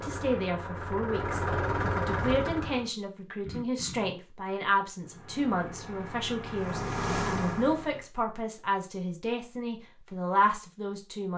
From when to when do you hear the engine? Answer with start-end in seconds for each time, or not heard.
0.0-2.9, 5.0-8.1.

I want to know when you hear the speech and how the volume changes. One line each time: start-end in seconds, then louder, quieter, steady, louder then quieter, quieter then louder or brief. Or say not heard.
0.0-11.3 steady.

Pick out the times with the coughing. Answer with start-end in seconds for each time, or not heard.
3.5-4.2.